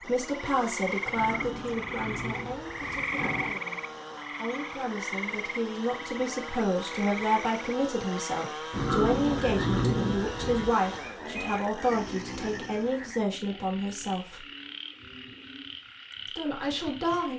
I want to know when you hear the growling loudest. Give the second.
10 s.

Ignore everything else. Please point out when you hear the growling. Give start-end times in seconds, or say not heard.
1.1-3.6, 8.7-10.8.